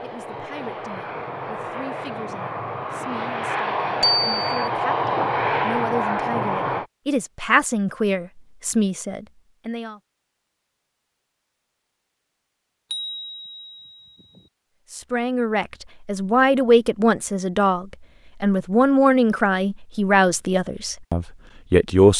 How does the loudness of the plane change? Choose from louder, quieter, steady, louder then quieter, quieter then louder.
louder.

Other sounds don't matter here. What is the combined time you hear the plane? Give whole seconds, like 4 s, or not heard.
7 s.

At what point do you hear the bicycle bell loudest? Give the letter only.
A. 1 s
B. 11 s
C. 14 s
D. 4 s
D.